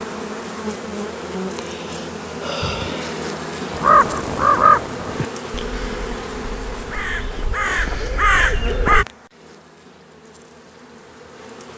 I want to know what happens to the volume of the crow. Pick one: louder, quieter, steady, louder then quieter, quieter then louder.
quieter then louder.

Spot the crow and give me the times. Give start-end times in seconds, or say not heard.
3.7-9.1.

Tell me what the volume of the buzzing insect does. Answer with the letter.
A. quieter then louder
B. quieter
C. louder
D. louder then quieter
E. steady
B.